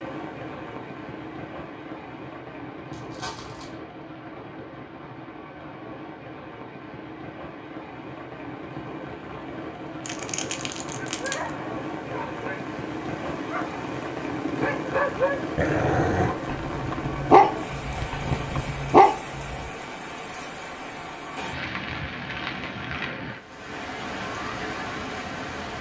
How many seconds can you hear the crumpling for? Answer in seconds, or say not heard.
3 s.